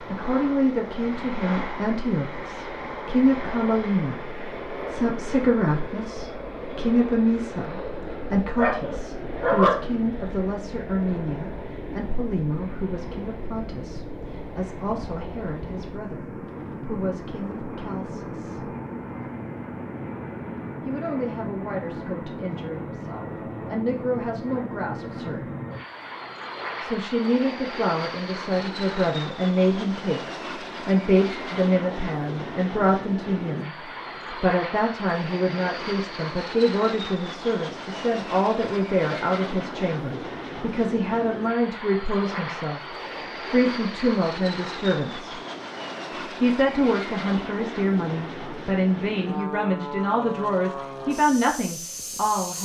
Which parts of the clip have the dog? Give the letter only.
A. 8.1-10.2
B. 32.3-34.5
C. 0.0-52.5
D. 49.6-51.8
A.